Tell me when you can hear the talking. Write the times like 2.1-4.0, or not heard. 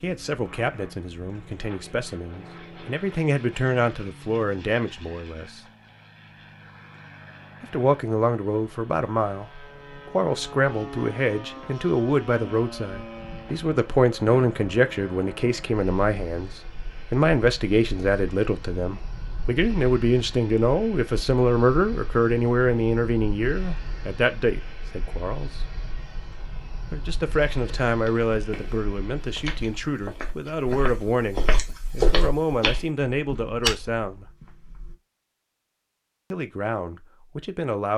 0.0-5.6, 7.6-25.5, 26.9-34.2, 36.3-37.9.